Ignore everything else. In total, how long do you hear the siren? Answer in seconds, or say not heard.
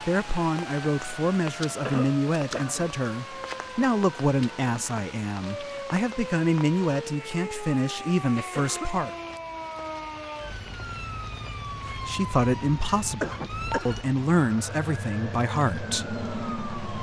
17 s.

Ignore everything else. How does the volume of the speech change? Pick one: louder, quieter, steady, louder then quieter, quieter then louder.
steady.